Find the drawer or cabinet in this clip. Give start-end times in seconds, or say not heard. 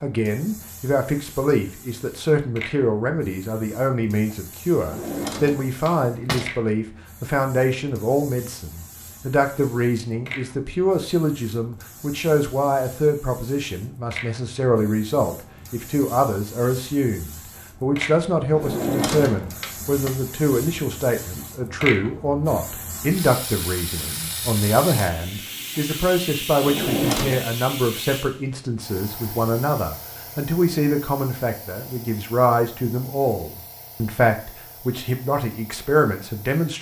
4.8-6.5, 18.5-20.1, 26.6-27.4.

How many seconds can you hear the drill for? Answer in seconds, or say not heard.
not heard.